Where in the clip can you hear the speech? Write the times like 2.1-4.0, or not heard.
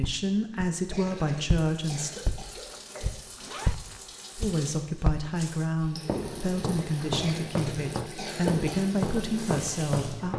0.0-2.2, 4.4-10.3.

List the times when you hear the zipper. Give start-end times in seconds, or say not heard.
2.7-3.8.